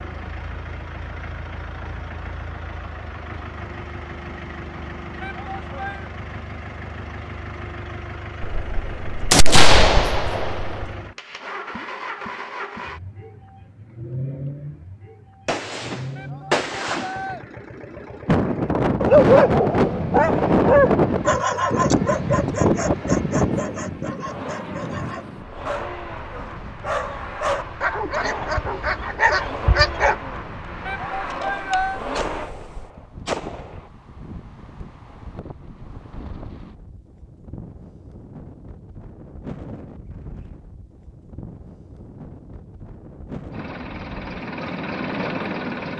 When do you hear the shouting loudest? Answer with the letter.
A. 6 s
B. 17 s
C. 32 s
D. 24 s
C.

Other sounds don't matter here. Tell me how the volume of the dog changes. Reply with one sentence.
The volume of the dog goes down, then up.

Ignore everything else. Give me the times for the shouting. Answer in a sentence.
The shouting can be heard from 5.2 to 6.1 s, from 16.1 to 17.4 s and from 30.9 to 32.0 s.